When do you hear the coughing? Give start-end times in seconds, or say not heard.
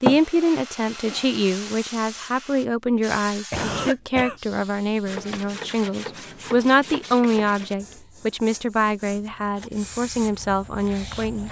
3.5-4.3.